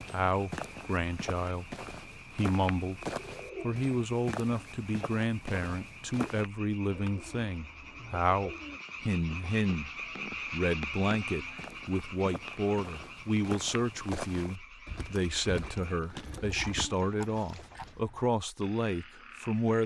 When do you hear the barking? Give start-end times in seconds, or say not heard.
not heard.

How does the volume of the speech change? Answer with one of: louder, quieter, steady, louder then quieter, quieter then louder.
steady.